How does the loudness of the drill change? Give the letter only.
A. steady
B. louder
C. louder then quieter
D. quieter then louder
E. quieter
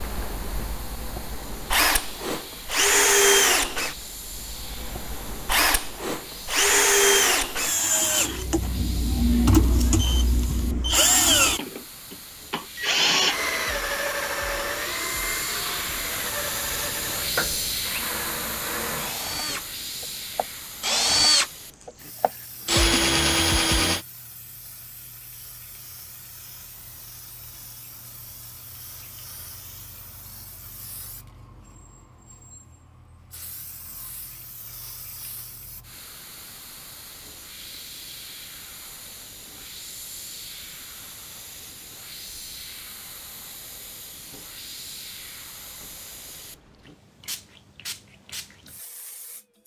D.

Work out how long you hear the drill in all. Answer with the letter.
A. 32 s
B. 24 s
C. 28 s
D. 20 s
B.